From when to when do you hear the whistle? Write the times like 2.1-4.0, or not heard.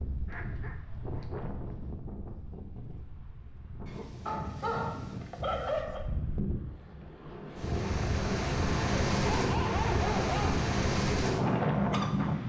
not heard.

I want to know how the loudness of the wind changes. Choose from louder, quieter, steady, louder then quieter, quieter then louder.
louder.